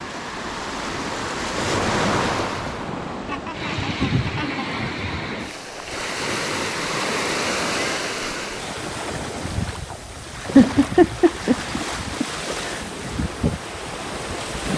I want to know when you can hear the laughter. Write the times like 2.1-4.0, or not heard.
3.2-4.8, 10.6-12.8.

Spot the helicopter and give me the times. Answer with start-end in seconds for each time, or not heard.
not heard.